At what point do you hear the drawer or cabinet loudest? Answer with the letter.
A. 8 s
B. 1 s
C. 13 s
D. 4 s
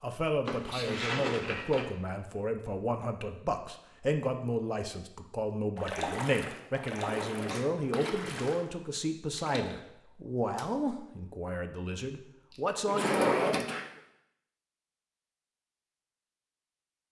C.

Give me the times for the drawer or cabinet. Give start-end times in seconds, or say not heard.
0.5-1.9, 7.1-8.1, 12.8-13.7.